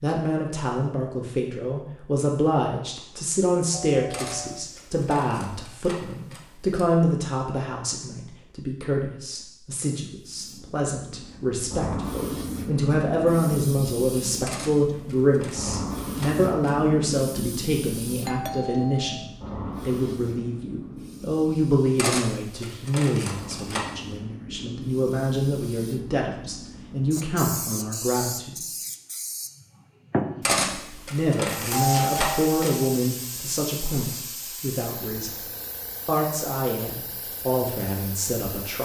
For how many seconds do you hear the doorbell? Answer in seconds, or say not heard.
3 s.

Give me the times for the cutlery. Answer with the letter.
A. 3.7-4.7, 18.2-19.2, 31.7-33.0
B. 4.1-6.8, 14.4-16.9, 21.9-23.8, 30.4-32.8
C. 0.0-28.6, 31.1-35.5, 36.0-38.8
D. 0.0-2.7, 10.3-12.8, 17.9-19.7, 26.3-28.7
B.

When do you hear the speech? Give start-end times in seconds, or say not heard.
0.0-28.6, 31.1-35.5, 36.0-38.8.